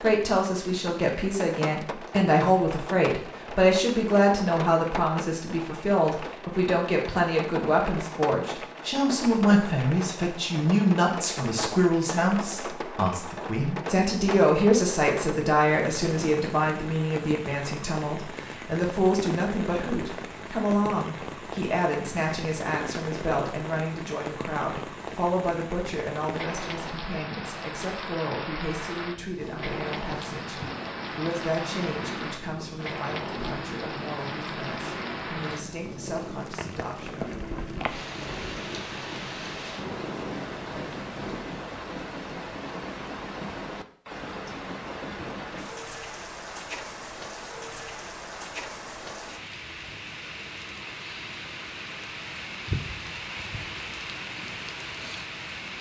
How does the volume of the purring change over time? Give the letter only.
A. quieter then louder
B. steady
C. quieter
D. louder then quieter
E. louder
B.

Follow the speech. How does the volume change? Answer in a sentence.
The volume of the speech goes down.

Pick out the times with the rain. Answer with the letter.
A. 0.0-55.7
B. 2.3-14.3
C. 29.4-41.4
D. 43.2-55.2
A.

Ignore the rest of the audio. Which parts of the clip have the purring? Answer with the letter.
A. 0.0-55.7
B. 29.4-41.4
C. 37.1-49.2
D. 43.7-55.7
B.